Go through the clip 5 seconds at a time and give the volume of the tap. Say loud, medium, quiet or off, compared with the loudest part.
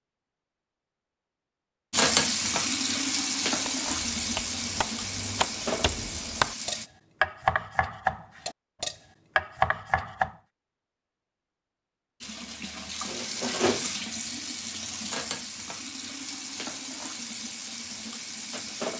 loud, medium, medium, medium.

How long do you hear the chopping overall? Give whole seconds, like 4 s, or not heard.
7 s.